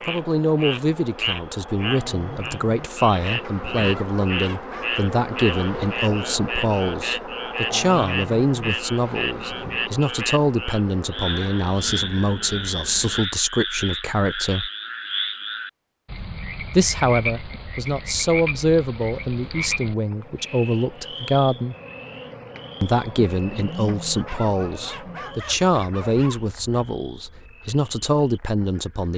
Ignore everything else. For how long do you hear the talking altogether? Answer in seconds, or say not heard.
26 s.